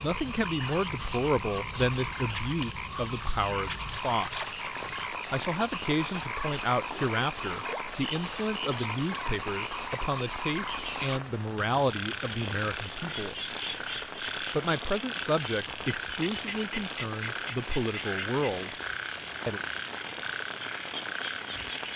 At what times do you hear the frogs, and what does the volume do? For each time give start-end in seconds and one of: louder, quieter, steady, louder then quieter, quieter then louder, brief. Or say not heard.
0.0-21.9 steady.